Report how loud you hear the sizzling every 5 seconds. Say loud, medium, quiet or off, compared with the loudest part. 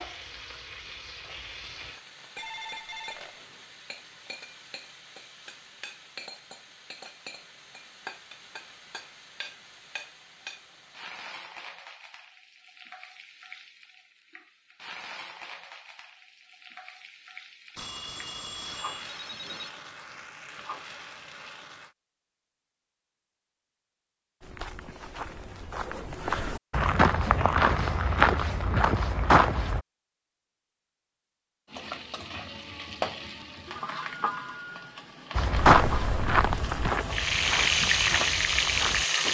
quiet, quiet, quiet, quiet, quiet, off, medium, loud.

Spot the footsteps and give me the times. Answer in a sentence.
You can hear the footsteps from 24.4 to 29.8 s and from 35.4 to 39.3 s.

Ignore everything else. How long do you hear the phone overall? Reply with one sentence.
You can hear the phone for 4 seconds altogether.